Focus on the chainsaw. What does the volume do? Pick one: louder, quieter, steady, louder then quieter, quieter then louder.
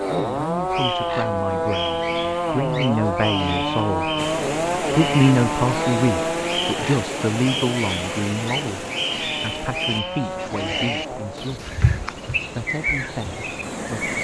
quieter.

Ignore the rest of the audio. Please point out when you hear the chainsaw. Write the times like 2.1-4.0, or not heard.
0.0-11.5.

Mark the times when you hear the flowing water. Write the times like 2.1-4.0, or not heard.
4.2-14.1.